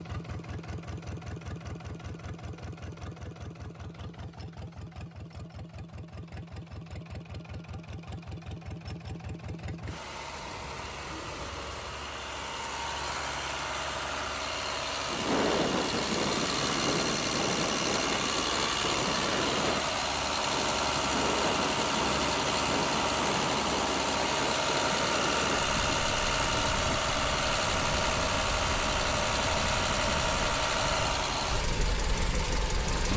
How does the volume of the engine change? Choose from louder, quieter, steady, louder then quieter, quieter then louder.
louder.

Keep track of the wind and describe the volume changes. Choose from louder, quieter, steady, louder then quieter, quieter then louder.
quieter.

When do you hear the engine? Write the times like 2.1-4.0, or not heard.
0.0-33.1.